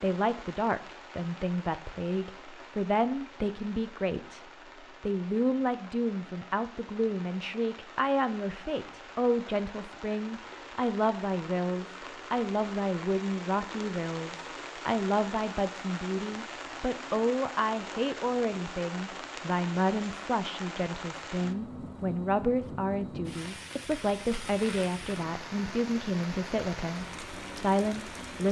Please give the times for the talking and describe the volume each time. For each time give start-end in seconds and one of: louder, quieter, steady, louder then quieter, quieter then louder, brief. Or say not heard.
0.0-28.4 steady.